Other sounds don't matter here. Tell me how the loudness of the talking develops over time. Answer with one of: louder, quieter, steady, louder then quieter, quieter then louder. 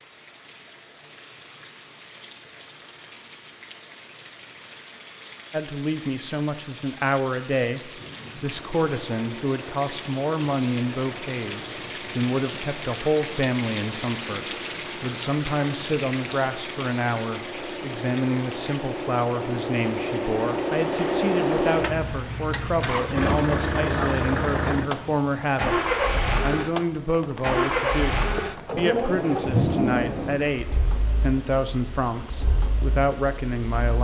steady.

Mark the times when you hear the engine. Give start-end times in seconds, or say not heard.
8.6-34.0.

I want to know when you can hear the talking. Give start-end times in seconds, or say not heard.
5.5-34.0.